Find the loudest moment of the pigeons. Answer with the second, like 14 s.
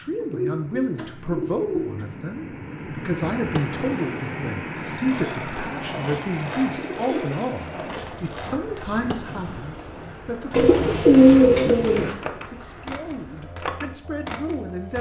11 s.